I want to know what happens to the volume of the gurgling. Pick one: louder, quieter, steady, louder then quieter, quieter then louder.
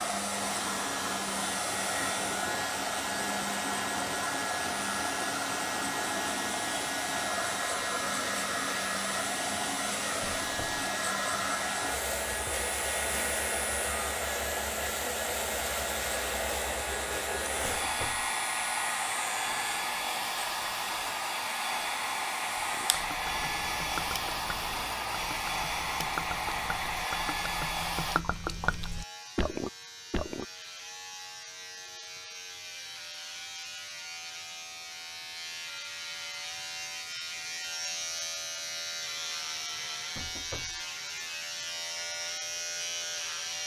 quieter then louder.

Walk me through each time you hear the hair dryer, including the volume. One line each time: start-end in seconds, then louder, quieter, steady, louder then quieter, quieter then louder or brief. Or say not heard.
0.0-28.2 steady.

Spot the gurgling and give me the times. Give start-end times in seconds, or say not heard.
22.6-30.4.